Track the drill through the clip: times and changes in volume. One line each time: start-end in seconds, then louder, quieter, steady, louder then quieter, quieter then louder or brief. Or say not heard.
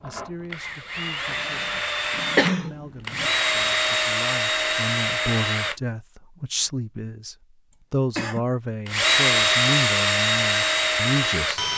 0.0-5.8 louder
8.8-11.7 brief.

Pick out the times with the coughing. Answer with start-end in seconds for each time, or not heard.
1.8-3.3, 7.7-8.4.